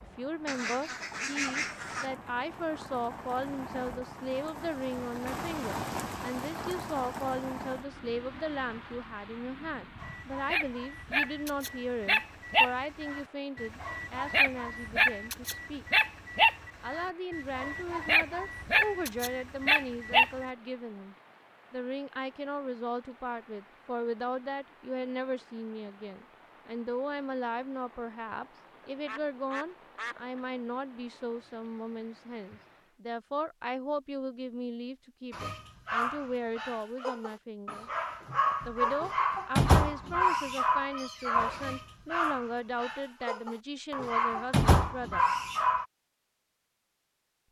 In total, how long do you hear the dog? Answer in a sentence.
The dog can be heard for 21 seconds in total.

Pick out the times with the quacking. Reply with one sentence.
You can hear the quacking from 0.5 to 2.1 s and from 29.1 to 30.4 s.